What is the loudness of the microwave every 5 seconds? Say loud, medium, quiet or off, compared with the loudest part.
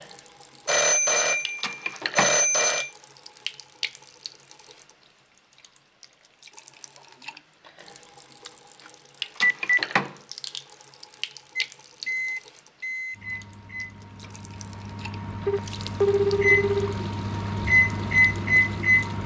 off, off, medium, loud.